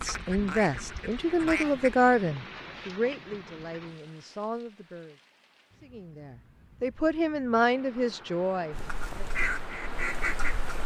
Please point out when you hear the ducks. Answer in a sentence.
The ducks can be heard from 0.0 to 2.0 s and from 8.7 to 10.8 s.